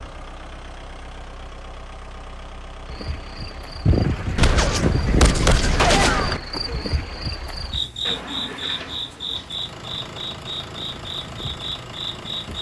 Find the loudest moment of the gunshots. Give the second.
6 s.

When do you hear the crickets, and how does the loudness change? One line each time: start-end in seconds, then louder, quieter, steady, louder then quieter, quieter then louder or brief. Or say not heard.
2.9-12.5 quieter.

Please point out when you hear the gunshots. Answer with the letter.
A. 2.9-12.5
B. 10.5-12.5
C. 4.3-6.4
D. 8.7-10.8
C.